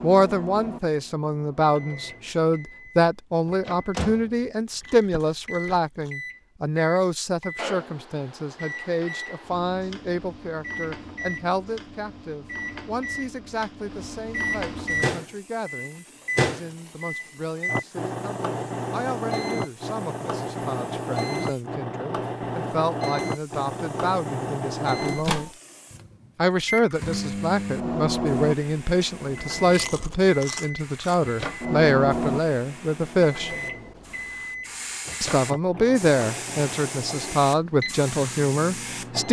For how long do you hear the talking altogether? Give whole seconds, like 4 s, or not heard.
37 s.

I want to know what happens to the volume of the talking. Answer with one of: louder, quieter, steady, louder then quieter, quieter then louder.
quieter then louder.